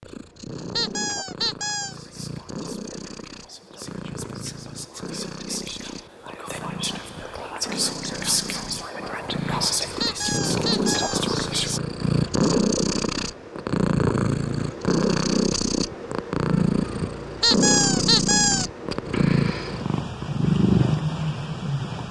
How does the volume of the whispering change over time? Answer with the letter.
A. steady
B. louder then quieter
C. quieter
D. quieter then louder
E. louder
E.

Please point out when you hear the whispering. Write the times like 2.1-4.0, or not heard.
1.8-11.8.